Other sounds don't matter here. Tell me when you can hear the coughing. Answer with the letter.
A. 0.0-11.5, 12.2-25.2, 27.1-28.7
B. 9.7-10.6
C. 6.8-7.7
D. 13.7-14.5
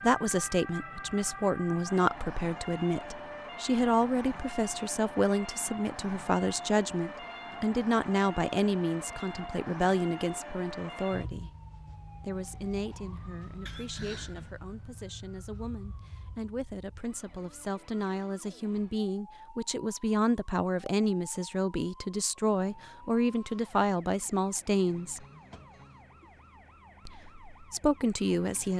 D.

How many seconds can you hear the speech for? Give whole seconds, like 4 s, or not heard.
26 s.